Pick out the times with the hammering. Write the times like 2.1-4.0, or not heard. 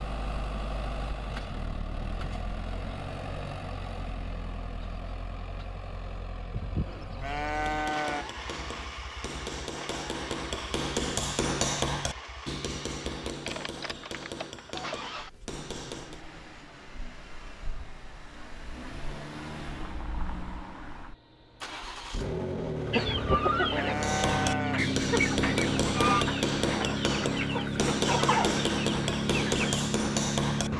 7.5-16.2, 23.9-30.7.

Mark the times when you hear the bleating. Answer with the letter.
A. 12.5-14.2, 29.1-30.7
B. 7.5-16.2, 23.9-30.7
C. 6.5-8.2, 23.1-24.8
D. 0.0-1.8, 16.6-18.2
C.